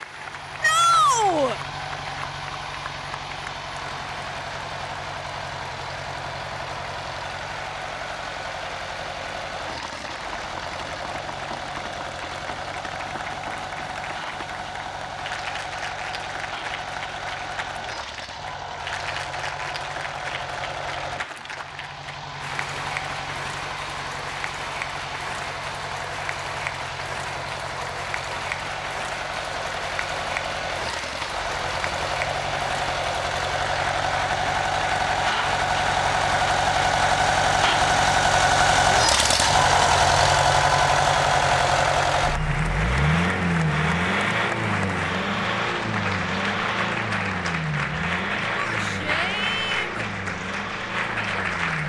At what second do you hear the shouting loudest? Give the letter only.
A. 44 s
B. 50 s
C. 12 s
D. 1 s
D.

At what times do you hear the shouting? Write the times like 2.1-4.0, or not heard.
0.6-1.6, 48.5-49.9.